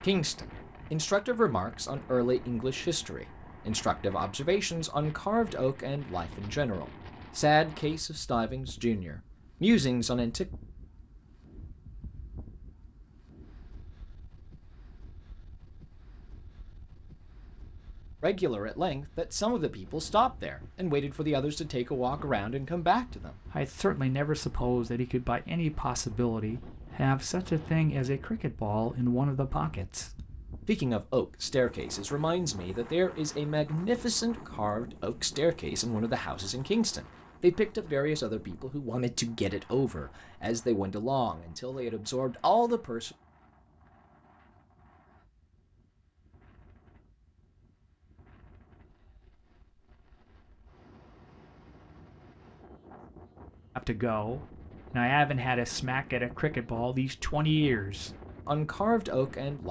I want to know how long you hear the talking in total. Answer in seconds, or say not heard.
41 s.